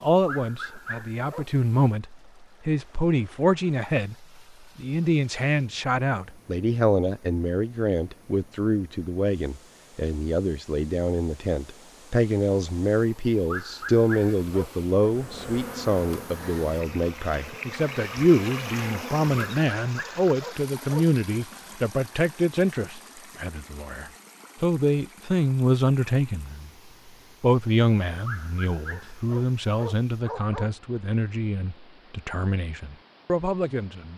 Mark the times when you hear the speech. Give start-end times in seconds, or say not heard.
0.0-26.7, 27.4-34.1.